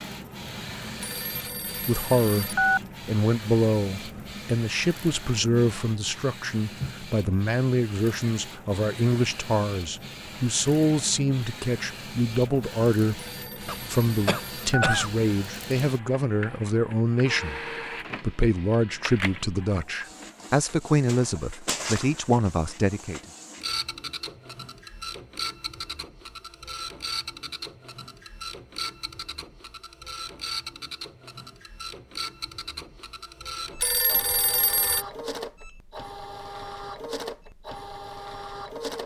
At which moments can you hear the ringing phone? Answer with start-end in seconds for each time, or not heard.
1.0-2.8, 13.2-14.9, 33.8-35.0.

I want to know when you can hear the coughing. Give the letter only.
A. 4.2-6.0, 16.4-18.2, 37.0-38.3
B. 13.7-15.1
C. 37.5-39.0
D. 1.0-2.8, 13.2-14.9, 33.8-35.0
B.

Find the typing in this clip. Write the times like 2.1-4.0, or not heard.
not heard.